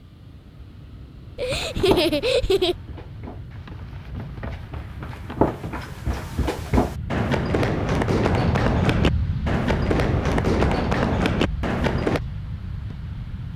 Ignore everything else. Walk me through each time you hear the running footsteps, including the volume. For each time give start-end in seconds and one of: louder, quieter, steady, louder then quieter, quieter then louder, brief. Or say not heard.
1.4-12.2 louder.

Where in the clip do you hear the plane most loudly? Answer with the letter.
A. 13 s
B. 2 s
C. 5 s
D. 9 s
D.